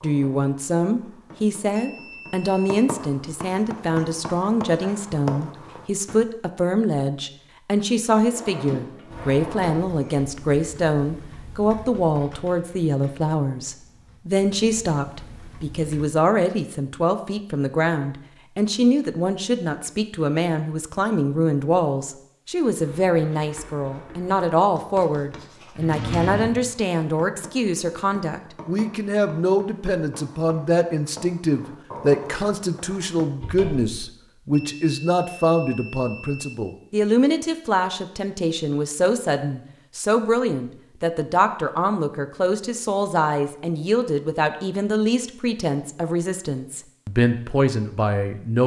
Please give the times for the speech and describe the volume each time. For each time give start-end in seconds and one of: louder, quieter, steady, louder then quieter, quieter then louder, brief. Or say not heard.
0.0-48.6 steady.